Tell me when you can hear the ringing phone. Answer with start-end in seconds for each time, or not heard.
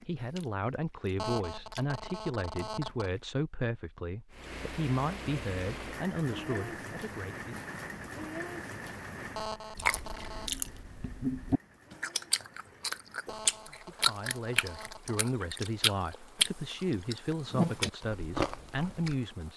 1.1-3.1, 9.3-10.5, 13.2-15.3.